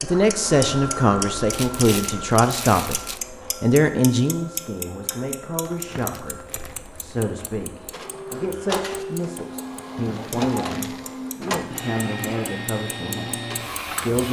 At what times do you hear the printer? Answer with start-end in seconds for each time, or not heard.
0.0-14.2.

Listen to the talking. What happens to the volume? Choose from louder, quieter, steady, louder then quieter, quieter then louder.
quieter.